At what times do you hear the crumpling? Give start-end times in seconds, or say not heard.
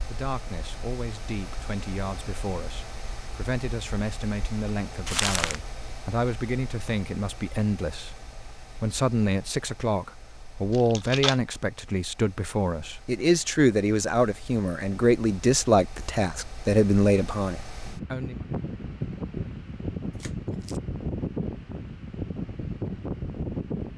5.0-5.6, 10.7-11.3, 20.1-20.8.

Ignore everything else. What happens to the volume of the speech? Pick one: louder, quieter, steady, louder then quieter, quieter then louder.
louder.